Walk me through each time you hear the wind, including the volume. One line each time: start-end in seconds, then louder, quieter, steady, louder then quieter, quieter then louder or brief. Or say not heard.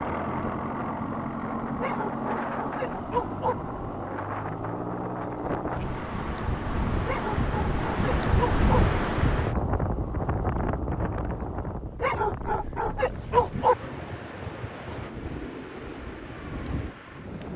0.0-17.5 louder then quieter.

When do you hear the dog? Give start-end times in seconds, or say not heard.
1.8-3.5, 7.0-8.8, 12.0-13.8.